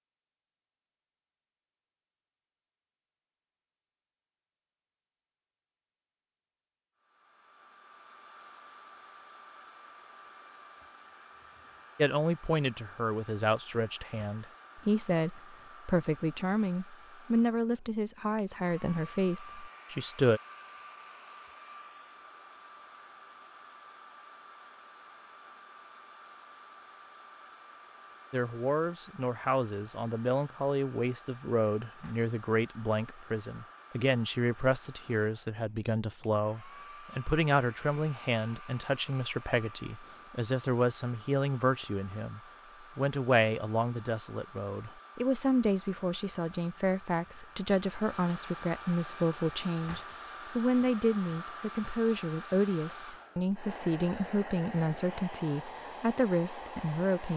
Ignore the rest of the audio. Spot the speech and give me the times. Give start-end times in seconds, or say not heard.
11.9-20.4, 28.3-57.3.